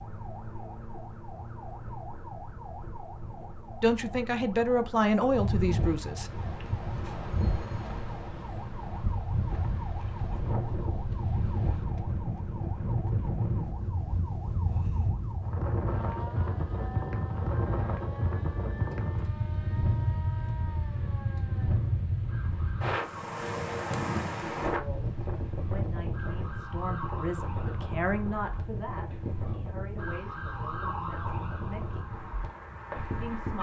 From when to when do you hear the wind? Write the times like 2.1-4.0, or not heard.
5.3-33.5.